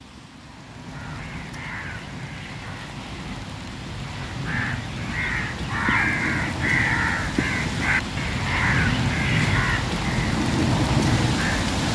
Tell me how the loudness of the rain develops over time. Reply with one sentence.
The loudness of the rain goes up.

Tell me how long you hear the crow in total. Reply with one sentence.
You can hear the crow for 11 seconds altogether.